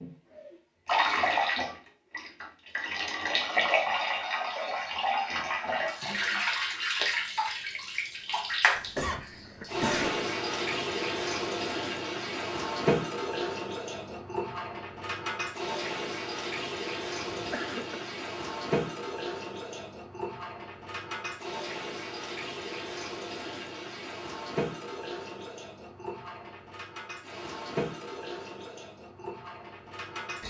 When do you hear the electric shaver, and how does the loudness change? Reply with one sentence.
The electric shaver can't be heard in this clip.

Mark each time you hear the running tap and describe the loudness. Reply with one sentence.
The running tap can be heard from 0.0 to 30.4 s, getting quieter.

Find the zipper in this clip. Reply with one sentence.
The zipper can't be heard in this clip.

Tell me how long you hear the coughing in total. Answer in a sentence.
You can hear the coughing for 2 seconds altogether.